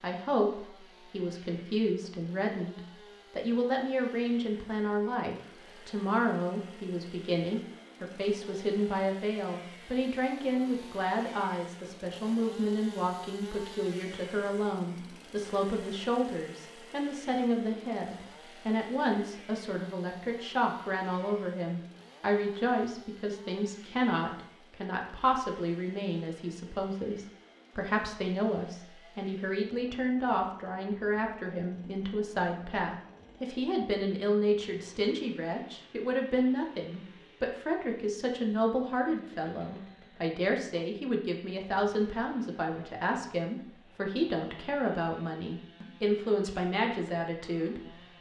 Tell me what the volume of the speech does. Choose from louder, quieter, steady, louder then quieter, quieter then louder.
steady.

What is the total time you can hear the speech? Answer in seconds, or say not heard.
48 s.